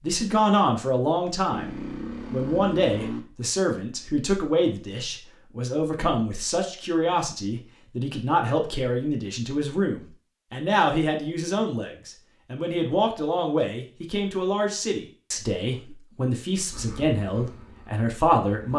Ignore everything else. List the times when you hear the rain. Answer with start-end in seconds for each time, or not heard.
not heard.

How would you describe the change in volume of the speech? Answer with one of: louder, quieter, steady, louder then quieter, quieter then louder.
steady.